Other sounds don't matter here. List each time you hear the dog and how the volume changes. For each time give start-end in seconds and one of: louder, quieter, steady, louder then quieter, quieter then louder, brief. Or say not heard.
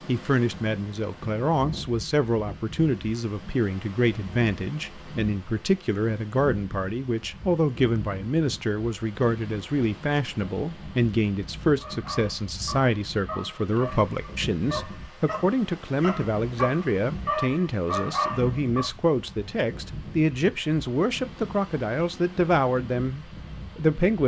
11.8-18.9 louder.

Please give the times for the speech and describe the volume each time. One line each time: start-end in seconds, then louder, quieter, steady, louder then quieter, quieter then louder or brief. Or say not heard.
0.1-24.2 steady.